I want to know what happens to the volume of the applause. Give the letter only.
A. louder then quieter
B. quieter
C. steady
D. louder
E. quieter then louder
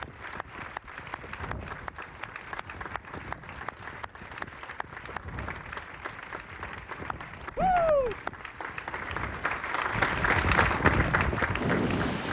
D.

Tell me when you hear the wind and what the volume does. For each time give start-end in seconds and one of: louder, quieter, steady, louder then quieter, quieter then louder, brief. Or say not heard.
0.0-12.2 louder.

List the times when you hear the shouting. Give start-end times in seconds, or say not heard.
7.5-8.2.